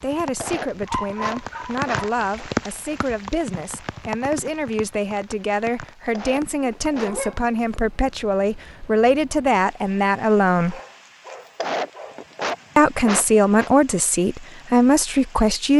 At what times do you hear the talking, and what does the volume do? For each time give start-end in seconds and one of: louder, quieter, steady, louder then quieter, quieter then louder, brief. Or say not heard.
0.0-10.8 louder
12.8-15.7 brief.